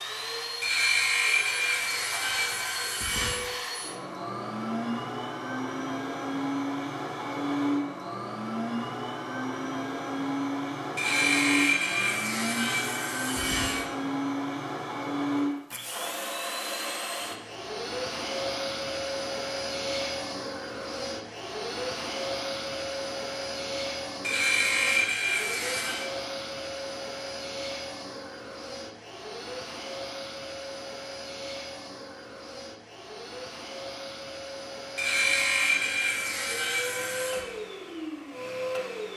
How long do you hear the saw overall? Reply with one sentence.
You can hear the saw for 10 seconds altogether.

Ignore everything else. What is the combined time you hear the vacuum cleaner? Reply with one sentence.
You can hear the vacuum cleaner for 39 seconds altogether.